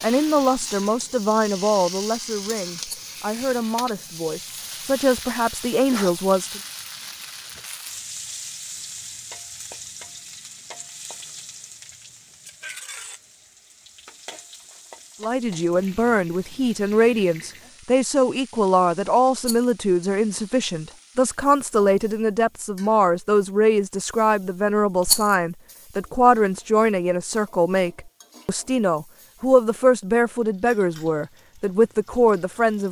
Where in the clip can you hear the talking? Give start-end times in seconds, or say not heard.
0.0-6.6, 15.2-32.8.